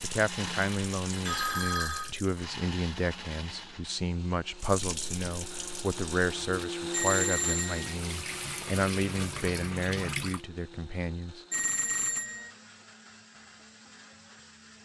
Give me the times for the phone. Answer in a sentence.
The phone can be heard from 1.2 to 2.1 s, from 6.9 to 8.0 s and from 11.5 to 12.5 s.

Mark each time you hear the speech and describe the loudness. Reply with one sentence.
You can hear the speech from 0.0 to 11.4 s, at a steady volume.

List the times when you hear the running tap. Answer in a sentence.
The running tap can be heard from 0.0 to 2.5 s and from 4.5 to 10.4 s.